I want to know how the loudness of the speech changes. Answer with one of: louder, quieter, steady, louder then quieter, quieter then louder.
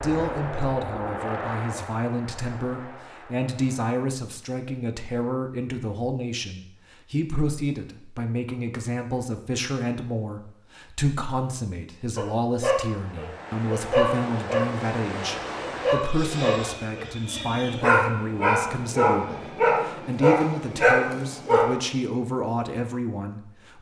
steady.